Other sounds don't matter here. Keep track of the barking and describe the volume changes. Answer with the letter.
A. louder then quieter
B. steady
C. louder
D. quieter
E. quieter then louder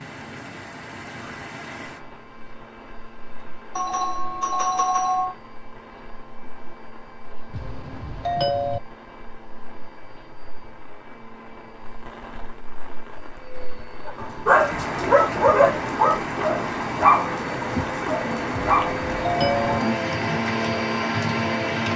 D.